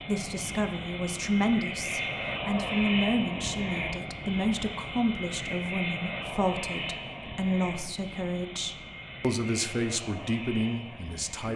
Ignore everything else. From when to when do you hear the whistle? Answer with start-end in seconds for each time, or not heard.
not heard.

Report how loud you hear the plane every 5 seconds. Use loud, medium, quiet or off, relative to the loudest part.
loud, loud, medium.